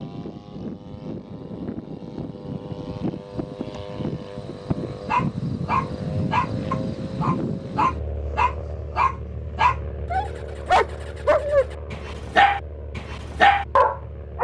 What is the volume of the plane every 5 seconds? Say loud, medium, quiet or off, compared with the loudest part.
loud, loud, medium.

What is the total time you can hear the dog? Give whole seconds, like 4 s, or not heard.
9 s.